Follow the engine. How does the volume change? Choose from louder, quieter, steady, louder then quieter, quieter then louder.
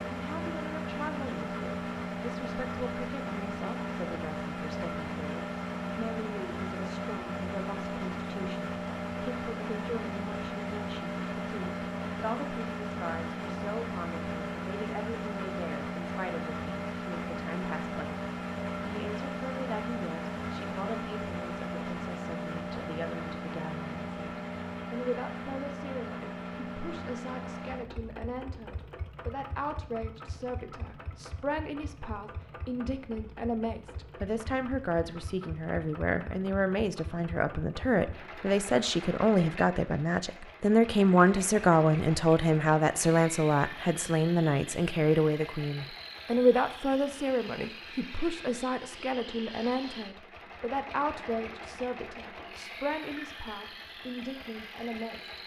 quieter.